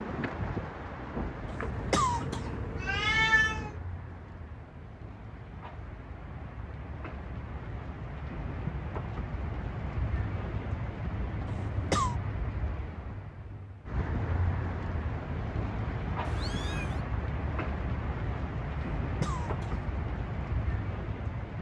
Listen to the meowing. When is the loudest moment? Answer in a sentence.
The loudest moment of the meowing is at 3 seconds.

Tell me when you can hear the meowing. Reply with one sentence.
The meowing can be heard from 1.7 to 3.8 s and from 16.2 to 17.0 s.